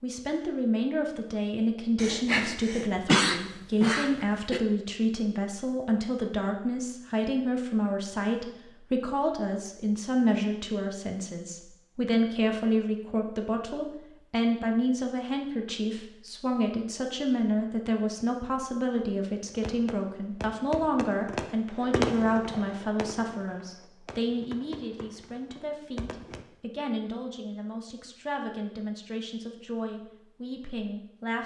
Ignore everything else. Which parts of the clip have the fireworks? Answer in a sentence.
You can hear the fireworks from 19.4 to 26.4 s.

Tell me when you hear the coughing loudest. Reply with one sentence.
The volume of the coughing peaks at 3 seconds.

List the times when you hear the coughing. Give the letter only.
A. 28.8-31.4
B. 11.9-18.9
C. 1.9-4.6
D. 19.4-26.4
C.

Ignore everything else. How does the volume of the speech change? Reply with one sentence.
The volume of the speech goes down.